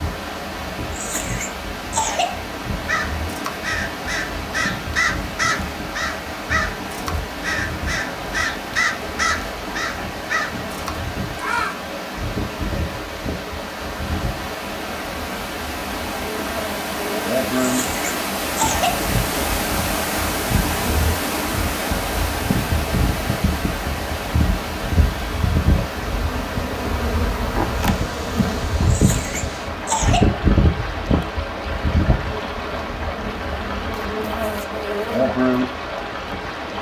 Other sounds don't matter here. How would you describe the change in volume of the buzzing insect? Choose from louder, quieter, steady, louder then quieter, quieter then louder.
louder.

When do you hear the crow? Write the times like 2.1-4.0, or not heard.
2.9-11.8.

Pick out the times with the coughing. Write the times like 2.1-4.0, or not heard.
0.9-2.4, 17.6-19.1, 28.9-30.4.